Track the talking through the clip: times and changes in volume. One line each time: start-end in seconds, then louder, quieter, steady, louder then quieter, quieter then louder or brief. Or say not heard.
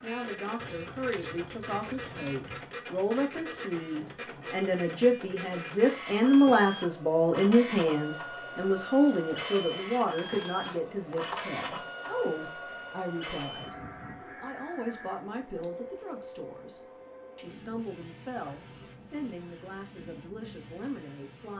0.0-21.5 louder then quieter.